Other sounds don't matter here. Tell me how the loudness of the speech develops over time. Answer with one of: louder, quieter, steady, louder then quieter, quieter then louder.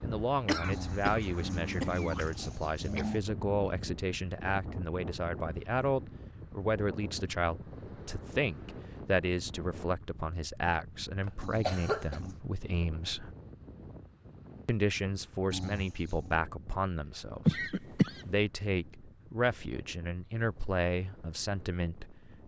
steady.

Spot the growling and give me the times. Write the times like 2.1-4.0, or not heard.
0.6-3.2, 11.4-12.3, 15.5-16.4.